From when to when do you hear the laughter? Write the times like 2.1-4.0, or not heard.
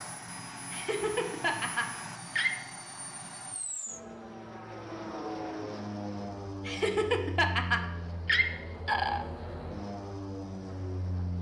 0.7-2.5, 6.7-9.2.